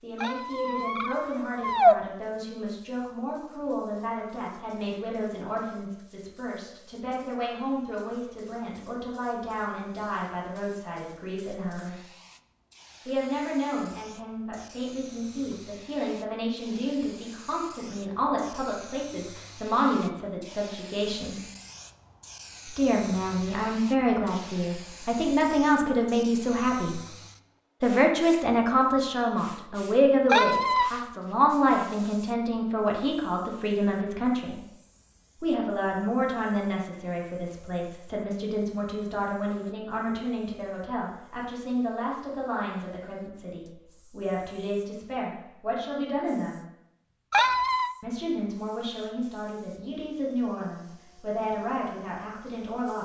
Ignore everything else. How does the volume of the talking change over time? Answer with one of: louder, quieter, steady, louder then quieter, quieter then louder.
louder then quieter.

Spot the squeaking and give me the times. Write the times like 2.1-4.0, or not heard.
0.2-1.9, 30.2-30.9, 47.3-48.0.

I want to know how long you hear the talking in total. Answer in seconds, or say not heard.
48 s.